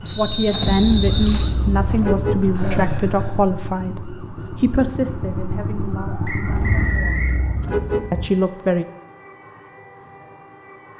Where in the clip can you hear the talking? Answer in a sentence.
The talking can be heard from 0.0 to 7.2 s and from 8.1 to 8.8 s.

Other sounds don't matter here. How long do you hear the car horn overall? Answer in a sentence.
You can hear the car horn for 4 seconds altogether.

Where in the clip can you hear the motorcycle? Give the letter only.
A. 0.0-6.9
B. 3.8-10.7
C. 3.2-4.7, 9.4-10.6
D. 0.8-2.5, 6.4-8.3
A.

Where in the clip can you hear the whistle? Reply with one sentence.
The whistle can be heard from 0.1 to 1.6 s and from 6.2 to 7.4 s.